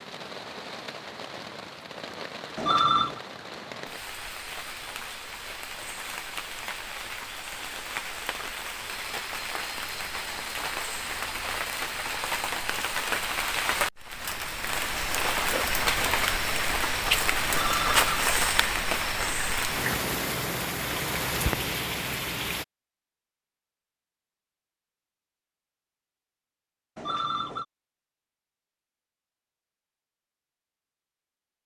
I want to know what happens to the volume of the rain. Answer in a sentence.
The loudness of the rain goes up.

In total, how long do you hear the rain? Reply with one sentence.
The rain can be heard for 23 seconds in total.